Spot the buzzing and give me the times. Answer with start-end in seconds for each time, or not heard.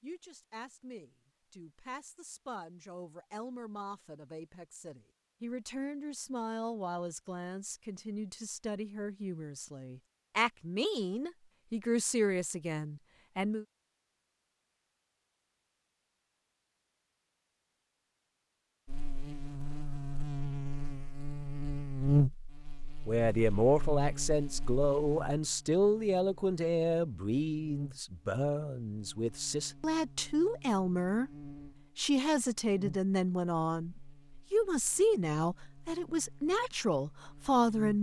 18.9-37.9.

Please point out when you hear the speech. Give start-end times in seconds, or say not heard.
0.0-13.7, 23.1-31.3, 31.9-37.9.